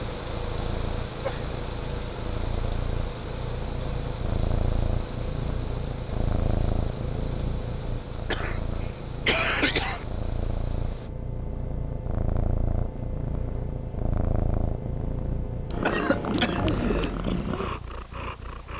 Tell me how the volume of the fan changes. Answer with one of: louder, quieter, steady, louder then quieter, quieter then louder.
quieter.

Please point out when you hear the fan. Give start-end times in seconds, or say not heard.
0.0-11.1.